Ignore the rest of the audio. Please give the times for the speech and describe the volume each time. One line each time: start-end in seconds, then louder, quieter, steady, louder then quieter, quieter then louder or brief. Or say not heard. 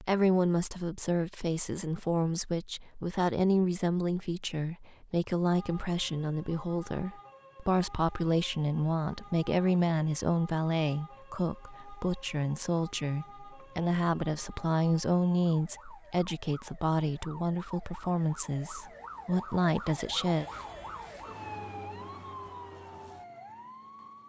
0.0-20.4 steady.